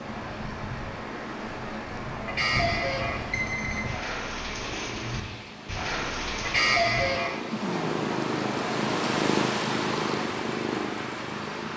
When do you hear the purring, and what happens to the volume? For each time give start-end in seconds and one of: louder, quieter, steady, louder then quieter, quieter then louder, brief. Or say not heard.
0.0-11.7 louder.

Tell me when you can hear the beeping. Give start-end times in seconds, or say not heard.
2.2-3.9, 6.4-7.3.